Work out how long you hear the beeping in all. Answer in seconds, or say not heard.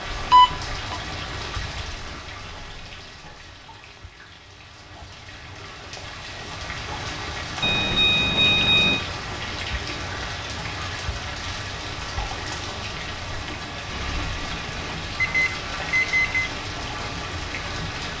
3 s.